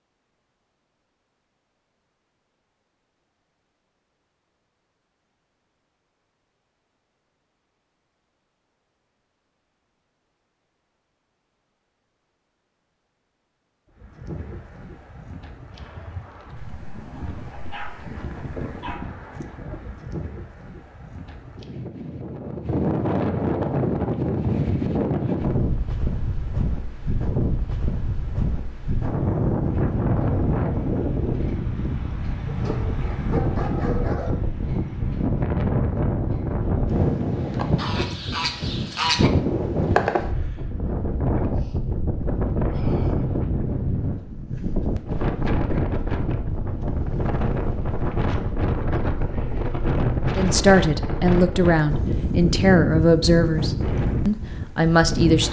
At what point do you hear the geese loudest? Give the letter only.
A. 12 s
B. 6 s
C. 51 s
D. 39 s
D.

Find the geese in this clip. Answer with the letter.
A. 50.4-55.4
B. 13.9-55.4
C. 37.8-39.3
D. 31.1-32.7
C.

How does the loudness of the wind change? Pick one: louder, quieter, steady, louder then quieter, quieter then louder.
louder.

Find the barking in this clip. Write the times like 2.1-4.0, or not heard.
16.6-19.0, 32.5-34.4.